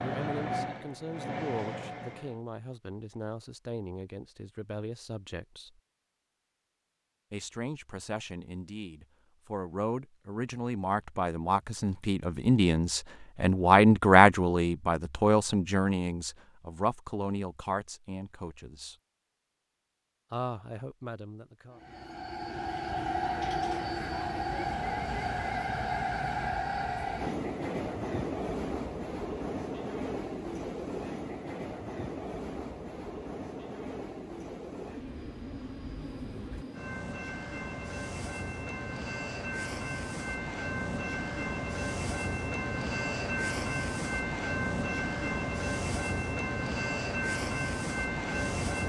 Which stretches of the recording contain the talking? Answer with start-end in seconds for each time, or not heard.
0.0-5.8, 7.3-18.9, 20.3-21.8.